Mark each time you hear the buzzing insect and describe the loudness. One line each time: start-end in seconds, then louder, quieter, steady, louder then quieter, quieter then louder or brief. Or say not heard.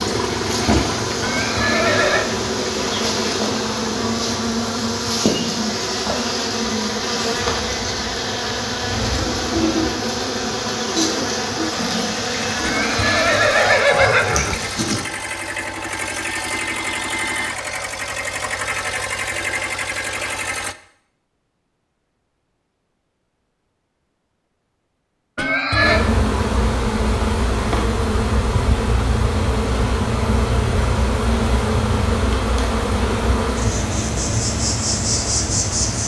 0.0-15.0 steady
25.8-36.0 steady.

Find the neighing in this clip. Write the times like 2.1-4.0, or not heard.
1.2-2.2, 12.6-14.6, 25.4-26.1.